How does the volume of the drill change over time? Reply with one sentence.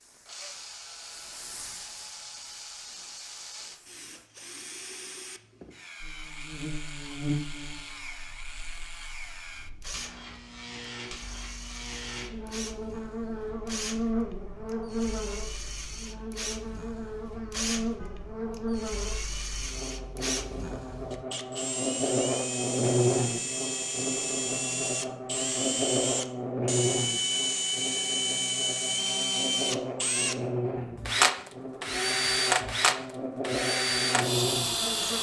The loudness of the drill goes up.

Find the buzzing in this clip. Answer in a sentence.
The buzzing can be heard from 6.0 to 35.1 s.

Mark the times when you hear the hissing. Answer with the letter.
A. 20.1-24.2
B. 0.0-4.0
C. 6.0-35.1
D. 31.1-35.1
B.